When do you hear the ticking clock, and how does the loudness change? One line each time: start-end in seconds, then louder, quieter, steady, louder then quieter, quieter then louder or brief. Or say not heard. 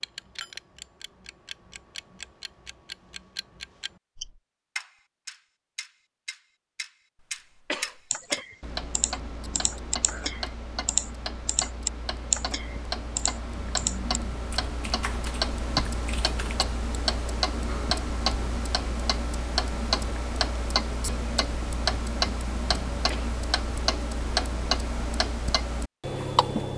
0.0-26.7 louder.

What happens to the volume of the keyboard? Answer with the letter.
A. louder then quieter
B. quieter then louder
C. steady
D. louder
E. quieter
A.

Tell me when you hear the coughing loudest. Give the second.
8 s.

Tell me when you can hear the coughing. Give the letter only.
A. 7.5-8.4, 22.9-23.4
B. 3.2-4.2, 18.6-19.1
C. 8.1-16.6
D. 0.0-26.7
A.